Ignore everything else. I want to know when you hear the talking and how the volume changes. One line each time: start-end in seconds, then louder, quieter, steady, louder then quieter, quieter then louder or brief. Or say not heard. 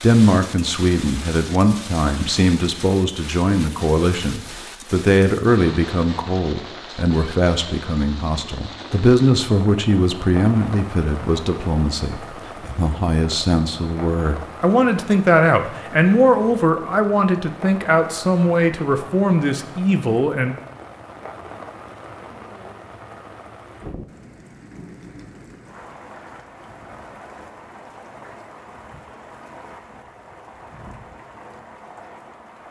0.0-20.6 steady.